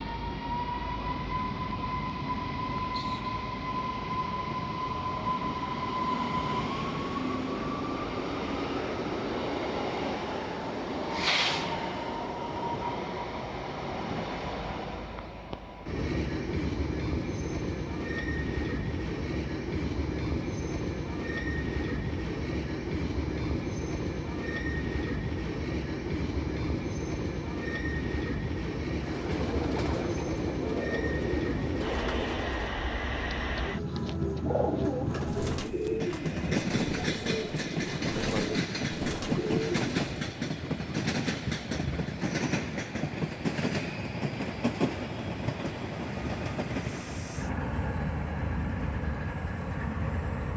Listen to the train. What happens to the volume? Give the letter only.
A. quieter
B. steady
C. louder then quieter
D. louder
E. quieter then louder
B.